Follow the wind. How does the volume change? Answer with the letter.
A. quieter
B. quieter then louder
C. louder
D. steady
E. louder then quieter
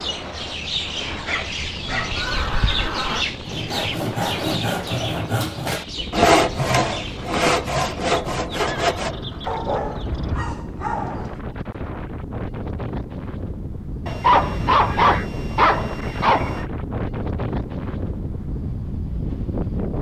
C.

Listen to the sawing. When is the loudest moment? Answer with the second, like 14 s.
6 s.